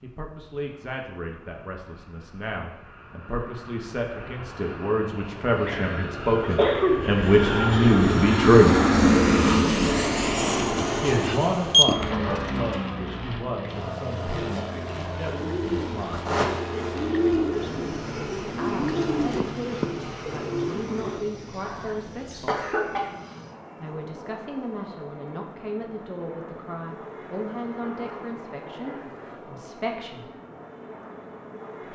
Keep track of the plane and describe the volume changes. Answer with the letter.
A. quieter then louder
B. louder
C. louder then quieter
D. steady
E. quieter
C.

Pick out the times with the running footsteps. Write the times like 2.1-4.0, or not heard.
not heard.